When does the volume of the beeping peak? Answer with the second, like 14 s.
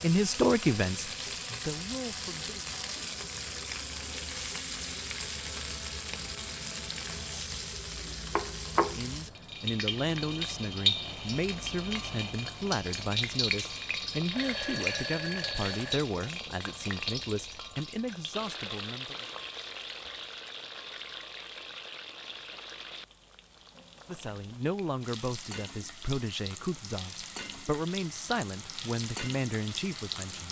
15 s.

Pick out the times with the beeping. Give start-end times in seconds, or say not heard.
14.3-16.0.